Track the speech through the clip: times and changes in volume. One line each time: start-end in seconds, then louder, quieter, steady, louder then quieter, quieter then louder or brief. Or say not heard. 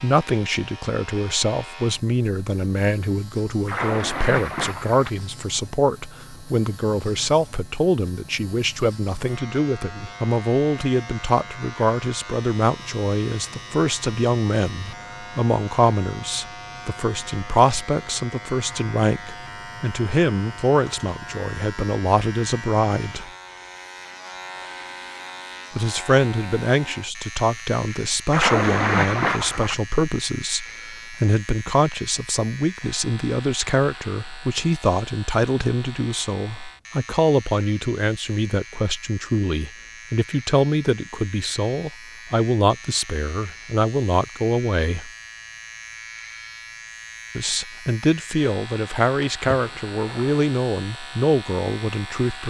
0.0-23.3 steady
25.8-45.1 steady
47.4-52.4 steady.